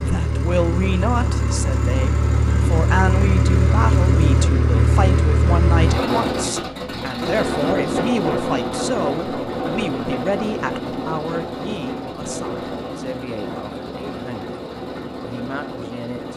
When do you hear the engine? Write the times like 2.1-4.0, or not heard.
0.0-16.3.